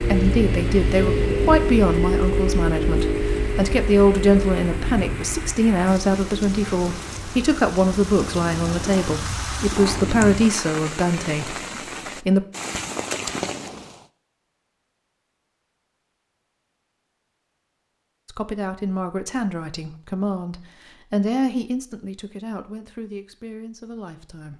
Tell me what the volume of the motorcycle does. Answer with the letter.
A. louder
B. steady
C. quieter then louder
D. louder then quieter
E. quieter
C.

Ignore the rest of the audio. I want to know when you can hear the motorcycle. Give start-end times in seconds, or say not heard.
0.0-10.4.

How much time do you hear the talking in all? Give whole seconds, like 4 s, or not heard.
19 s.